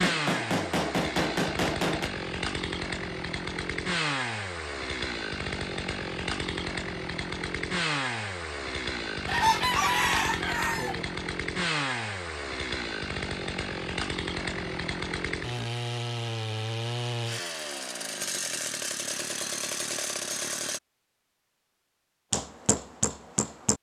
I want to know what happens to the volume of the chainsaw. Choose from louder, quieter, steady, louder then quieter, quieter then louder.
steady.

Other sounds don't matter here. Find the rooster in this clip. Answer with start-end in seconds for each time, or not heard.
9.2-11.1.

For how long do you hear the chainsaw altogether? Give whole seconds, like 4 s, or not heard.
21 s.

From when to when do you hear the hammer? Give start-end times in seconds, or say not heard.
0.0-2.1, 22.3-23.7.